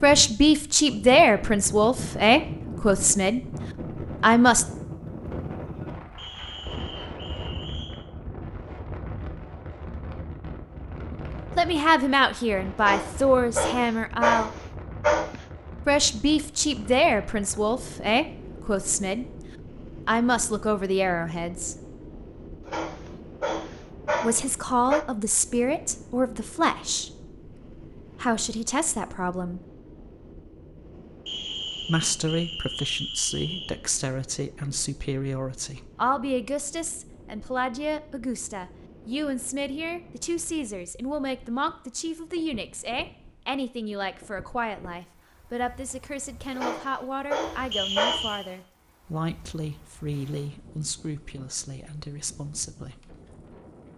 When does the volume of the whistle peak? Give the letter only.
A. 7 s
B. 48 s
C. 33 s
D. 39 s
B.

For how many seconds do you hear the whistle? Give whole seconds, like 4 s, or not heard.
5 s.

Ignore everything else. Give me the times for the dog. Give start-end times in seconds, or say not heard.
12.8-15.4, 22.6-25.1, 46.5-48.2.